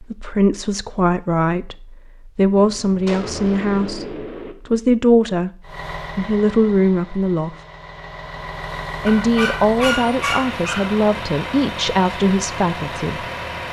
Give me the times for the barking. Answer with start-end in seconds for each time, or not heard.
9.1-10.9.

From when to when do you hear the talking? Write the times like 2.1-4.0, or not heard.
0.0-5.5, 6.2-7.5, 9.1-13.2.